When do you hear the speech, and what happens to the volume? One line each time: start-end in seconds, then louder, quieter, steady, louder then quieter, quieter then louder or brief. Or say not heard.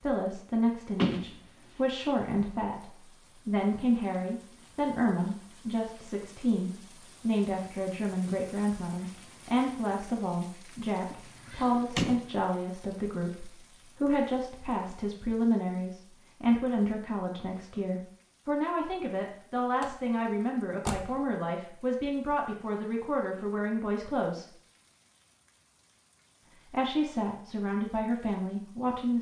0.0-24.4 steady
26.6-29.1 brief.